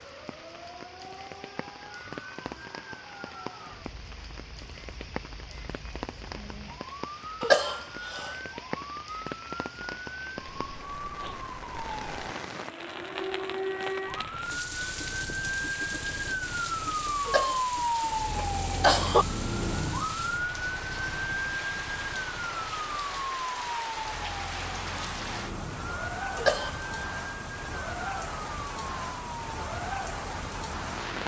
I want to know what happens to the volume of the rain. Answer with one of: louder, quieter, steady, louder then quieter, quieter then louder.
louder.